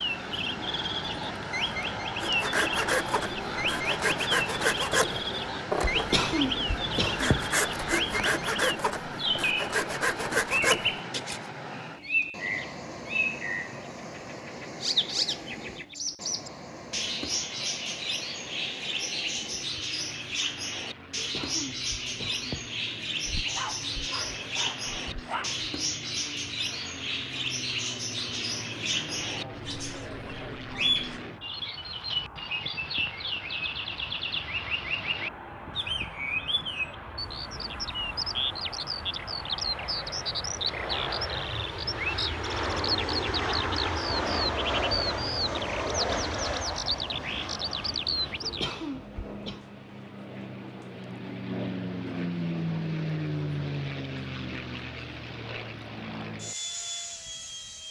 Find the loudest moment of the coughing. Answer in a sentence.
The loudest moment of the coughing is at 6 seconds.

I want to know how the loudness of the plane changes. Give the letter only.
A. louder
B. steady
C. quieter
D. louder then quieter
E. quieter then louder
E.